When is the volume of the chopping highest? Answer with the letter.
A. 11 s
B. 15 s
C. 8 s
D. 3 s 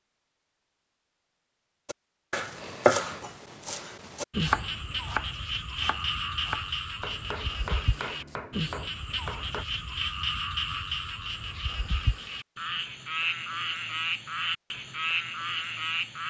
D.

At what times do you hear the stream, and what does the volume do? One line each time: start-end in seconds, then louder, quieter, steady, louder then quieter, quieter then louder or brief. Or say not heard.
not heard.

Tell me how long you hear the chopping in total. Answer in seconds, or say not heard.
8 s.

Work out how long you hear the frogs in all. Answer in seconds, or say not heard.
12 s.